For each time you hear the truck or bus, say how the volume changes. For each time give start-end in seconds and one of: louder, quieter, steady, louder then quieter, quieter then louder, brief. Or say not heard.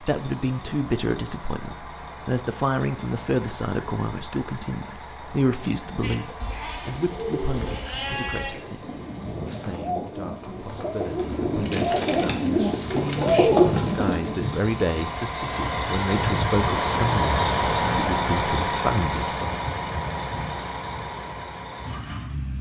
0.0-22.5 louder.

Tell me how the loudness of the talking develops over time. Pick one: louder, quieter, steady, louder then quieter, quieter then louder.
quieter then louder.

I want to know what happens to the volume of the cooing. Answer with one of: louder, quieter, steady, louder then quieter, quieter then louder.
louder.